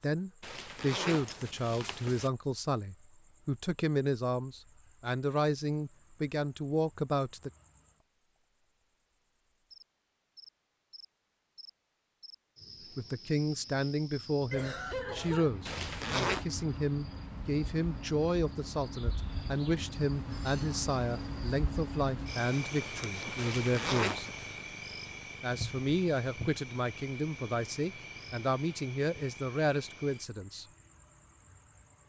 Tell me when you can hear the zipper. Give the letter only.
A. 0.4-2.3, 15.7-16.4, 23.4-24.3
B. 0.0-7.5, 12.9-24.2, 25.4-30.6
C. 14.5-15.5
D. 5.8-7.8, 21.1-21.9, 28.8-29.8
A.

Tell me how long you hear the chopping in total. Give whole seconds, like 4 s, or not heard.
not heard.